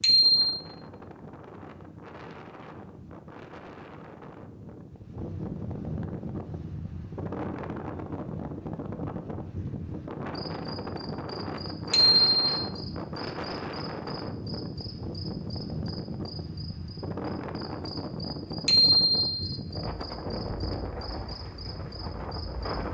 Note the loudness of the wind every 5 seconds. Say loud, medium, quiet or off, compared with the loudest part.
medium, loud, loud, loud, loud.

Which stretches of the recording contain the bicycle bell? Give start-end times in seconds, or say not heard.
0.0-0.6, 11.9-12.5, 18.6-19.5.